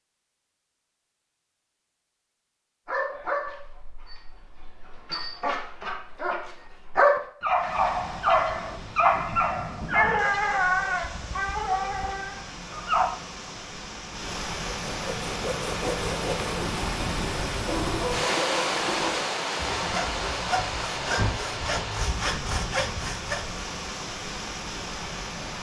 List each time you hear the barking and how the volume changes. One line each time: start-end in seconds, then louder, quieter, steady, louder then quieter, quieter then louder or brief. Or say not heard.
2.9-13.1 louder then quieter.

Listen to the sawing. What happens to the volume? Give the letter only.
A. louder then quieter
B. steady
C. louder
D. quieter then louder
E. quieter
B.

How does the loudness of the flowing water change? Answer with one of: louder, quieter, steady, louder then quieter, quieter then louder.
louder then quieter.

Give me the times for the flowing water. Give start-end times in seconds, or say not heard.
7.5-25.5.